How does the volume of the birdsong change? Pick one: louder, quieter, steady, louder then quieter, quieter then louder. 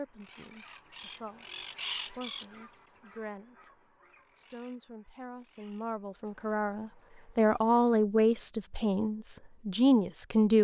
louder then quieter.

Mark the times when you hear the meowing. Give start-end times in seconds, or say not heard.
not heard.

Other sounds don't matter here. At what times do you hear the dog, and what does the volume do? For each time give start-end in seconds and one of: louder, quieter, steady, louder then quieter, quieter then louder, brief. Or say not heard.
not heard.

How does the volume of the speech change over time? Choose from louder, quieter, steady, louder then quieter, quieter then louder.
louder.